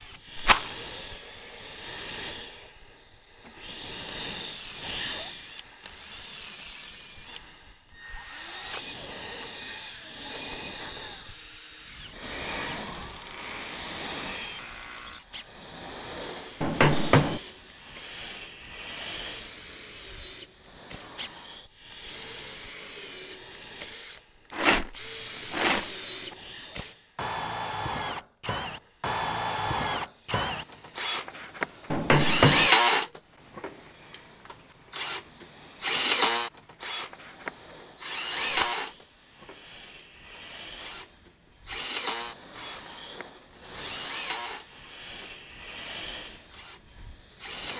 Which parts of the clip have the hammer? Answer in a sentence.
The hammer can be heard from 16.6 to 17.4 s and from 31.9 to 32.7 s.